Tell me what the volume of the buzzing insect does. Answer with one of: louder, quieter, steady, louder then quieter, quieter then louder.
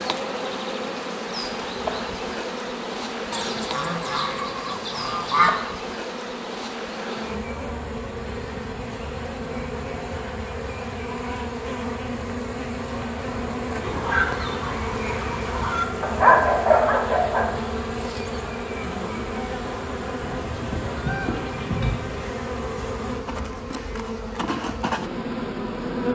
steady.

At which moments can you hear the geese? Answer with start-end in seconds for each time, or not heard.
3.3-5.5, 13.8-15.8, 20.2-22.1.